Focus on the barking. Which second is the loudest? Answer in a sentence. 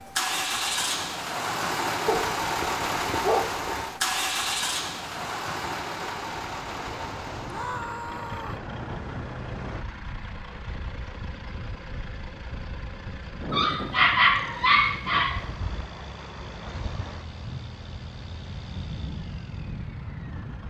The volume of the barking peaks at 14 seconds.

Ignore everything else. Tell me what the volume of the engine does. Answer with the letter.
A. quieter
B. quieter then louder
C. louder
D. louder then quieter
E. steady
A.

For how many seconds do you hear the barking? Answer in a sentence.
You can hear the barking for 4 seconds altogether.